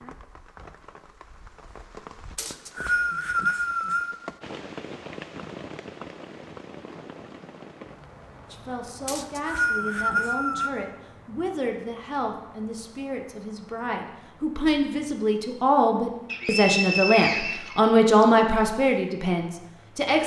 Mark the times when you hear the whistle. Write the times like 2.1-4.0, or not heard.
2.4-4.2, 9.1-10.7, 16.3-18.2.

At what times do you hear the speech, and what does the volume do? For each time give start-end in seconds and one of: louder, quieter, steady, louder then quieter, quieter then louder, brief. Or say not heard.
8.5-20.2 louder.